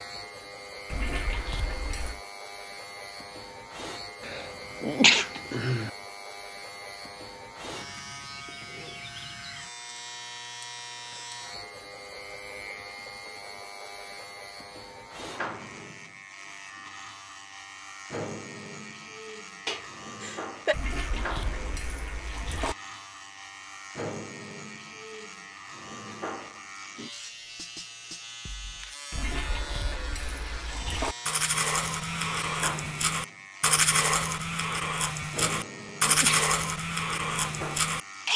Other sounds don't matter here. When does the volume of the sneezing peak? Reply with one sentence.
The volume of the sneezing peaks at 5 seconds.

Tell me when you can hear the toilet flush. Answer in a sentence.
You can hear the toilet flush from 0.9 to 2.2 s, from 20.7 to 22.8 s and from 29.1 to 31.1 s.